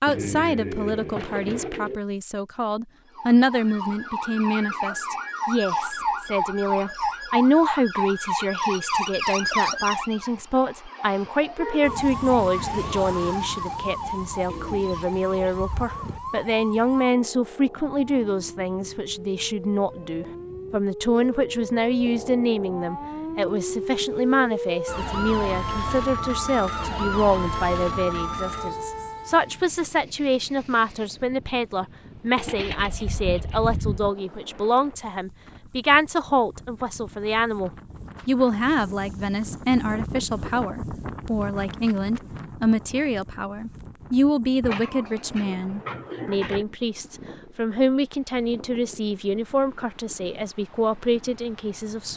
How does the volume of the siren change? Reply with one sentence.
The loudness of the siren goes down, then up.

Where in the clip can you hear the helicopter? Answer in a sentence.
The helicopter can't be heard in this clip.